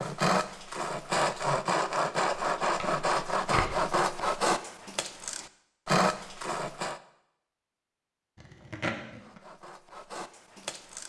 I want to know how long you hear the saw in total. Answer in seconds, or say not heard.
9 s.